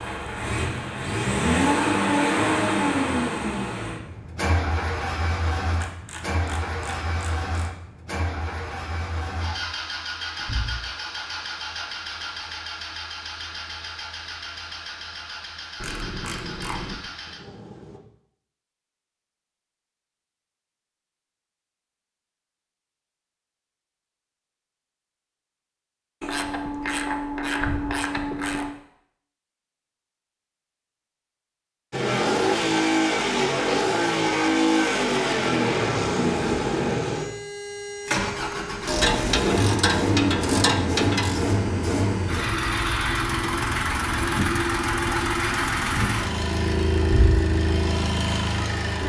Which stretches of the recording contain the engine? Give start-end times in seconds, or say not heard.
0.0-18.0, 31.9-49.0.